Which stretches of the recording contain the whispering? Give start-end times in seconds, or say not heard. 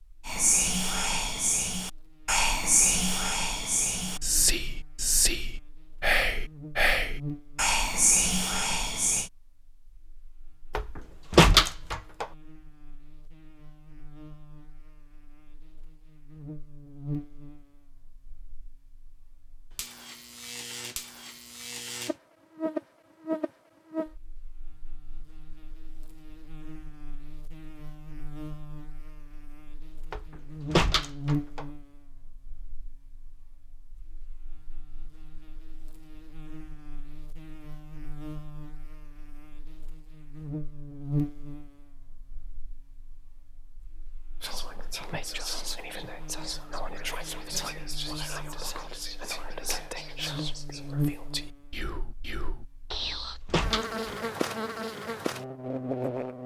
0.2-9.3, 44.4-53.4.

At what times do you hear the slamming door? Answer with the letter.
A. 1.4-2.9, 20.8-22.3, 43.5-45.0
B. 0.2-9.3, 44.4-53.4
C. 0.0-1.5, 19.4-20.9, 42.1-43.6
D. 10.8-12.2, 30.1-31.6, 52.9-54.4
D.